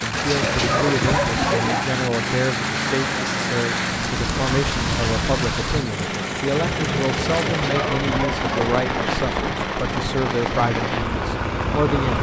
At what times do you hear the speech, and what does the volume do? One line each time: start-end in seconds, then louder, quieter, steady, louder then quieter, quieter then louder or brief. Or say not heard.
0.0-12.1 steady.